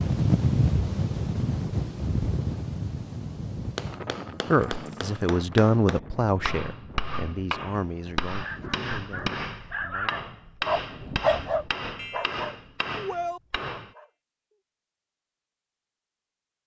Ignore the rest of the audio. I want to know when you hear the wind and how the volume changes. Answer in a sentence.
The wind can be heard from 0.0 to 9.8 s, getting quieter.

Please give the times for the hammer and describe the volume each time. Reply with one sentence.
The hammer can be heard from 3.8 to 13.9 s, at a steady volume.